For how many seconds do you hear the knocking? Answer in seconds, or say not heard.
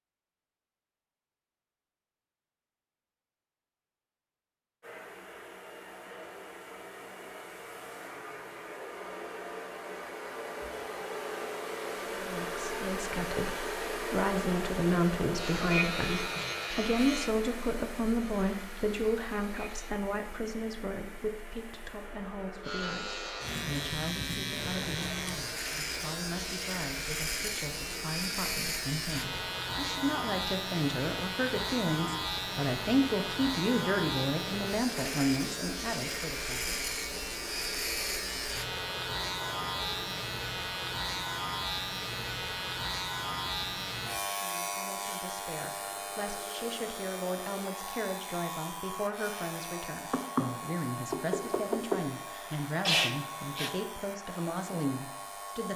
2 s.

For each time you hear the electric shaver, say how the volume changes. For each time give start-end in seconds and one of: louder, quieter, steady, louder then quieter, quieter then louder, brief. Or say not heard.
15.3-19.9 quieter
22.6-55.7 quieter.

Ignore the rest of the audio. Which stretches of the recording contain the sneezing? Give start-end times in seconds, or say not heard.
52.3-53.7.